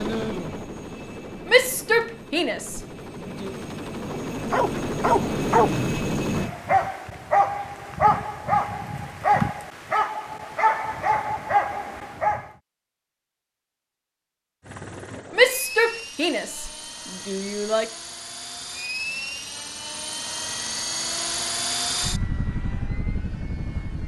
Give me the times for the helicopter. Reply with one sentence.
The helicopter can be heard from 0.0 to 6.5 s and from 14.6 to 24.0 s.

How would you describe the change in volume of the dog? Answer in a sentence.
The volume of the dog stays about the same.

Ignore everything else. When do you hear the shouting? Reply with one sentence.
The shouting can be heard from 1.4 to 3.5 s and from 15.3 to 17.9 s.